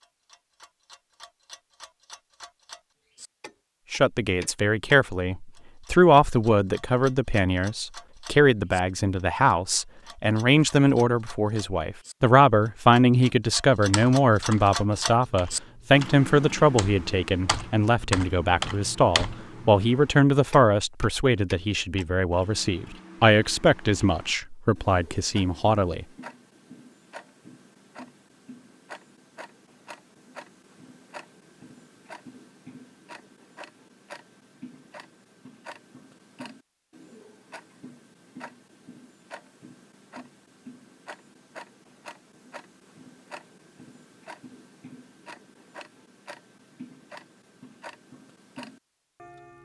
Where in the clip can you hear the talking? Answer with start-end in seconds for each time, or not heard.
3.9-26.1.